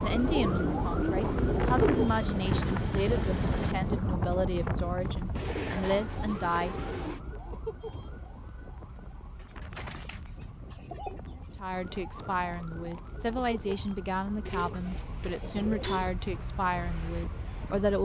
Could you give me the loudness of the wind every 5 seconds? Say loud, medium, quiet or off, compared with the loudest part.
loud, quiet, quiet, quiet.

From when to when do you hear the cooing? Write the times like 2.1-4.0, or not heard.
0.1-2.0, 5.3-7.2, 9.4-11.4, 14.4-16.1.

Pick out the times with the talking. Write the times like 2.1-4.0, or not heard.
0.0-6.9, 11.6-18.0.